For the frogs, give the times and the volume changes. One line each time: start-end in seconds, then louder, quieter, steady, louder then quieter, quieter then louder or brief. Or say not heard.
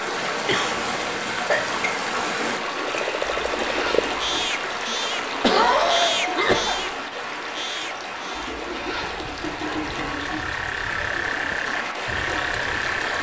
2.7-13.1 quieter then louder.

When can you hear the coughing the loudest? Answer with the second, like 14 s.
6 s.